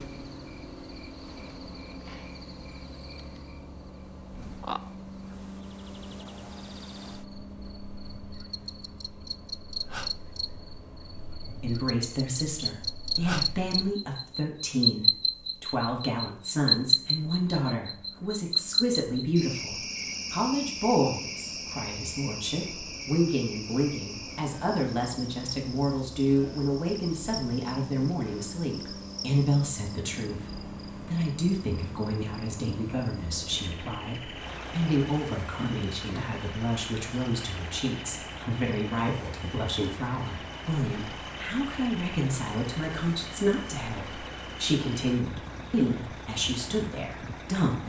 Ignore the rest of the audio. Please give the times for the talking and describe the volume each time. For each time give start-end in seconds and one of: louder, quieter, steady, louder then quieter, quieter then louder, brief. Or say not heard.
11.6-47.8 steady.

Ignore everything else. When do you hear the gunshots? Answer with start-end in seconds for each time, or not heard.
not heard.